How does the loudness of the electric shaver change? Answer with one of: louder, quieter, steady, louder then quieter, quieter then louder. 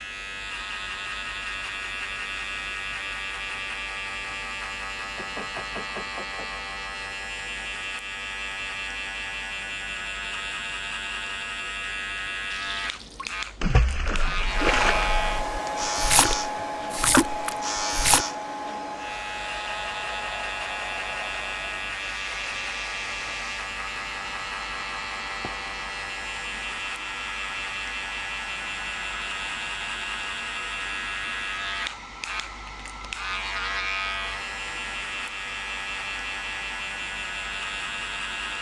steady.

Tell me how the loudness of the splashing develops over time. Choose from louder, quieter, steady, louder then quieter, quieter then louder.
quieter then louder.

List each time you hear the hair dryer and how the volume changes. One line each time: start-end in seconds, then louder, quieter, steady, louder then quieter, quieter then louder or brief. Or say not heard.
14.4-38.5 quieter.